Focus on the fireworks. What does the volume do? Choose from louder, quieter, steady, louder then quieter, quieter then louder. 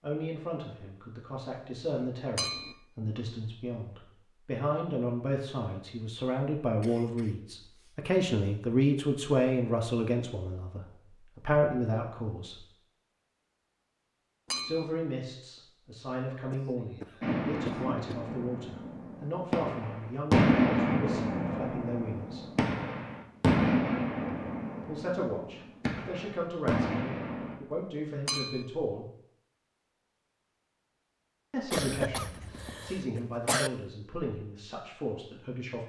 louder then quieter.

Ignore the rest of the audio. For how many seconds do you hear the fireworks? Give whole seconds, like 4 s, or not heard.
11 s.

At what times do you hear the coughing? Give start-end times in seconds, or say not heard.
6.8-8.0, 16.5-18.0, 31.7-33.7.